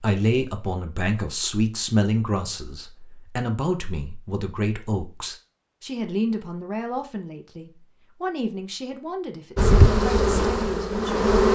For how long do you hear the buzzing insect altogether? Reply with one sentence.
You can hear the buzzing insect for 2 seconds altogether.